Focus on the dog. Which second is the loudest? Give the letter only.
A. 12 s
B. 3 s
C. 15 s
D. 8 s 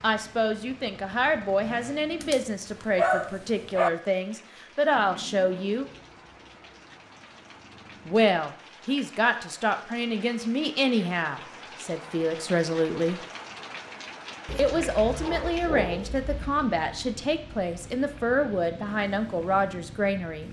B.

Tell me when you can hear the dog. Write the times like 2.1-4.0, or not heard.
2.2-3.9, 14.4-16.4.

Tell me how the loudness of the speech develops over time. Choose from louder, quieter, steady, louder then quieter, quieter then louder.
steady.